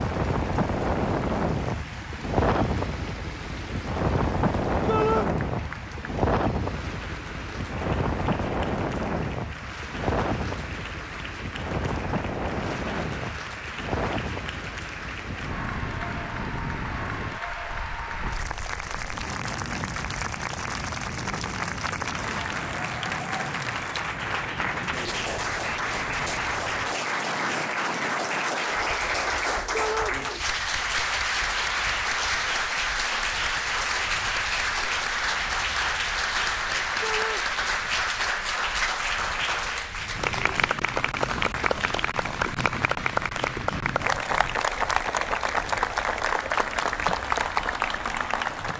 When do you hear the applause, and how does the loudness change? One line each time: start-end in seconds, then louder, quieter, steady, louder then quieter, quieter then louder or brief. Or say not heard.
0.0-48.7 louder.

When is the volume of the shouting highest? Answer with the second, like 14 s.
5 s.